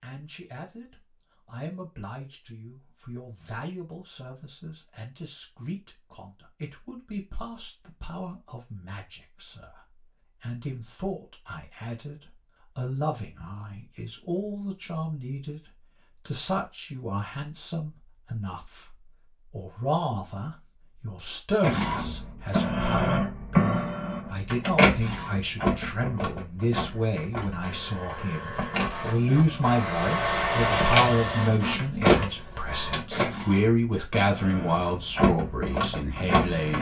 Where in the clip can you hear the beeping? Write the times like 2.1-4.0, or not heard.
not heard.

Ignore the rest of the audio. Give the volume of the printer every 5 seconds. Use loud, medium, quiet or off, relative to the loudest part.
off, off, off, off, loud, medium, loud, loud.